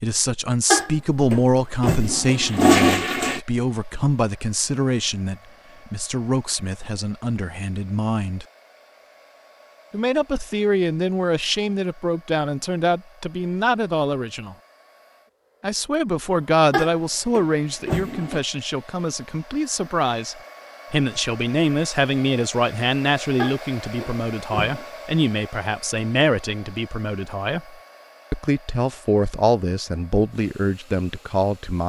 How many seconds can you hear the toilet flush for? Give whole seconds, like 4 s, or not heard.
6 s.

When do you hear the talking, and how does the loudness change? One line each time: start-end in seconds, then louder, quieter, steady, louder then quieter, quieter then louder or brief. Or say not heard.
0.0-8.4 quieter
9.9-14.6 steady
15.6-31.8 steady.